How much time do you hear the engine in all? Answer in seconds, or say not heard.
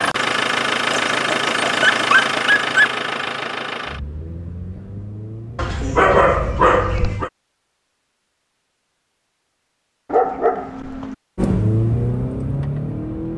9 s.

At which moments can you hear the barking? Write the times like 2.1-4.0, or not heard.
0.9-2.9, 5.5-7.3, 10.1-11.2.